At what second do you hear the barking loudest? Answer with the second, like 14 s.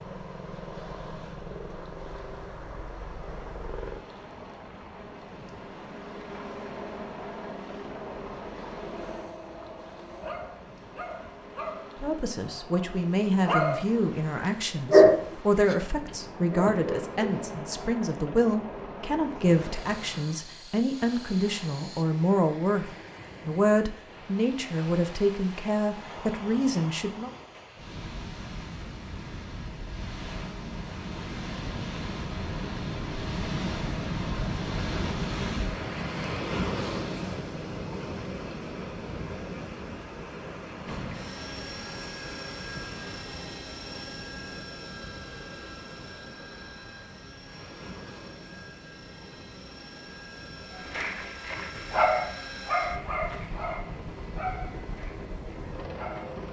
15 s.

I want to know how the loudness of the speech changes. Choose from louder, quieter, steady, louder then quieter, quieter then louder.
steady.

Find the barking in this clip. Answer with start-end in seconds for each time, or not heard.
8.7-14.0, 14.8-17.2, 50.9-56.4.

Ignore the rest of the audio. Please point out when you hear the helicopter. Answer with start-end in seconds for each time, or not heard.
0.0-22.1, 40.9-56.4.